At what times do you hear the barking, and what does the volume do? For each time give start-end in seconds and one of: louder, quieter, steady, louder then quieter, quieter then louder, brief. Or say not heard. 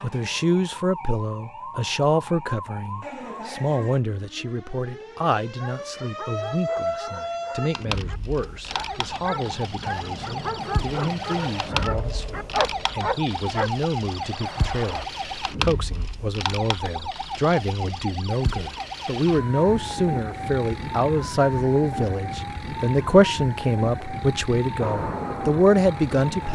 5.5-13.7 louder.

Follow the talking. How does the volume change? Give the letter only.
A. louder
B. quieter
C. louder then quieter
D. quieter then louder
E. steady
D.